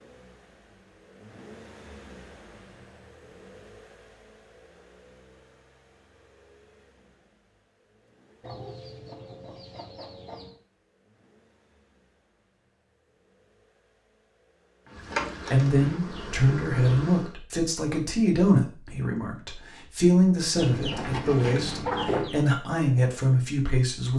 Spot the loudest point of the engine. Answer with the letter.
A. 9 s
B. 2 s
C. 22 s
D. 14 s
B.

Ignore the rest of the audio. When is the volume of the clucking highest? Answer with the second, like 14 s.
22 s.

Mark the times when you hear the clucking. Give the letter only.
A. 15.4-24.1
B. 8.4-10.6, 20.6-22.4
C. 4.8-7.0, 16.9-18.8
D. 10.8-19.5
B.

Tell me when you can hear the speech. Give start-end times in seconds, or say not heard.
15.4-24.1.